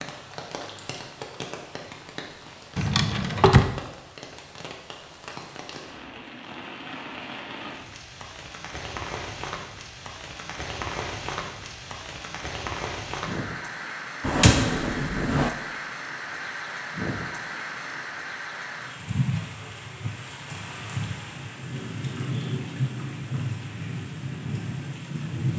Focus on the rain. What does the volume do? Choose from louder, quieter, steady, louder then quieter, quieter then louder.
louder.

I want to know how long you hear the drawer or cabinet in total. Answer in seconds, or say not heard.
2 s.